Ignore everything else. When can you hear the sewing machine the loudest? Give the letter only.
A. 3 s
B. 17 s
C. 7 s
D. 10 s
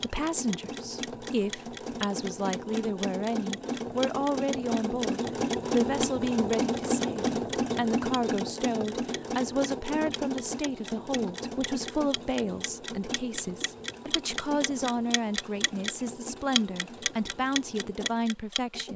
C.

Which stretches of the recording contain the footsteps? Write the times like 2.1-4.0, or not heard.
not heard.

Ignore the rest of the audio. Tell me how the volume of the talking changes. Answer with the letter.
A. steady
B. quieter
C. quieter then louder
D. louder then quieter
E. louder
A.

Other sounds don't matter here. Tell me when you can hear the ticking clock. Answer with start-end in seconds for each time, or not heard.
0.0-18.9.